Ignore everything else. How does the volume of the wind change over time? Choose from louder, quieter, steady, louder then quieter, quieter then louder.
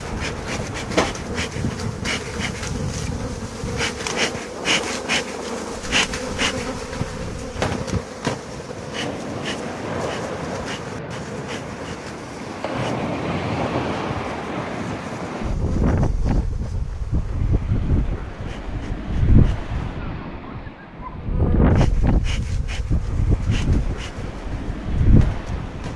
louder.